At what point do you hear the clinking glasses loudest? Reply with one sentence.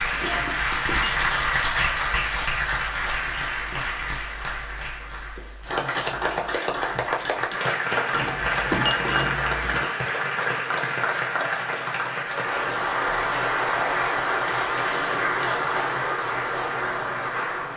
The volume of the clinking glasses peaks at 9 seconds.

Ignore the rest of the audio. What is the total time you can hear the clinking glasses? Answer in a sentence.
The clinking glasses can be heard for 4 seconds in total.